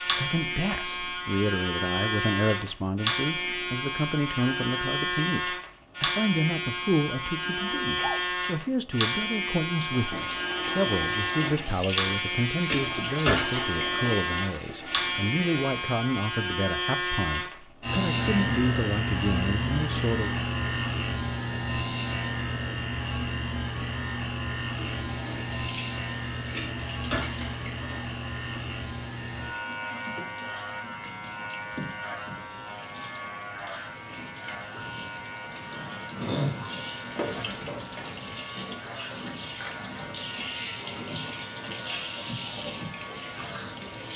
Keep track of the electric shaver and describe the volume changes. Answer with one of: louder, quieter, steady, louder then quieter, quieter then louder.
quieter.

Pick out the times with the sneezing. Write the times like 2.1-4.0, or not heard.
7.5-8.2.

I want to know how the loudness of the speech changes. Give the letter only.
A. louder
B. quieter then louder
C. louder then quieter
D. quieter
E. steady
E.